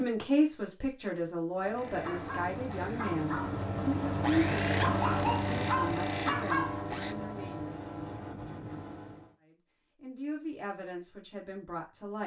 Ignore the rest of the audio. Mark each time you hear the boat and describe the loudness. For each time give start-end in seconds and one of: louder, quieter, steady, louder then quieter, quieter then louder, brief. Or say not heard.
1.6-9.3 louder then quieter.